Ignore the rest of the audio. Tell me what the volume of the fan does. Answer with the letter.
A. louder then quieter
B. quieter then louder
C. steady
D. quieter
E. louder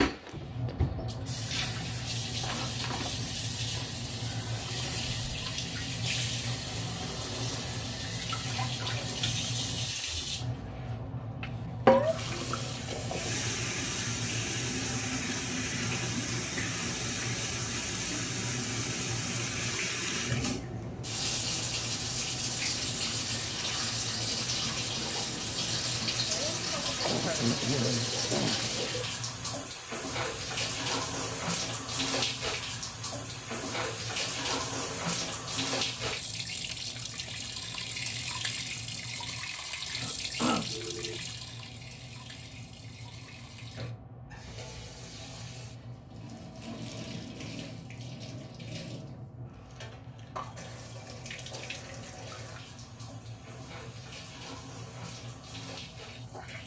D.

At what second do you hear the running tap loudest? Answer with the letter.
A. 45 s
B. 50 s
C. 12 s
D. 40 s
C.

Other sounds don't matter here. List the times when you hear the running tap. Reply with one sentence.
You can hear the running tap from 0.0 to 56.6 s.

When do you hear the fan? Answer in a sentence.
The fan can be heard from 0.1 to 56.6 s.